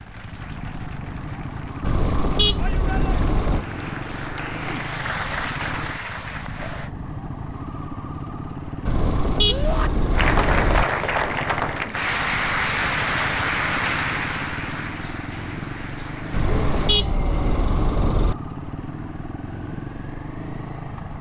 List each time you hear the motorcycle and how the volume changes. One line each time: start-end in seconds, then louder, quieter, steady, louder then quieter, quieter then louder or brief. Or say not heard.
0.0-21.1 steady.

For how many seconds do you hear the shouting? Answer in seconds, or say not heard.
2 s.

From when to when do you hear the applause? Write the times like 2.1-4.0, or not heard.
0.0-6.9, 10.1-17.0.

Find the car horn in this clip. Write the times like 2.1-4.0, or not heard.
1.8-3.6, 8.8-10.8, 16.3-18.4.